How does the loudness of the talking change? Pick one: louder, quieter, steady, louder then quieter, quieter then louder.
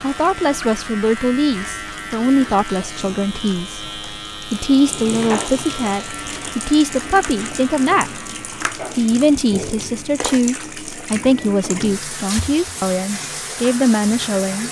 steady.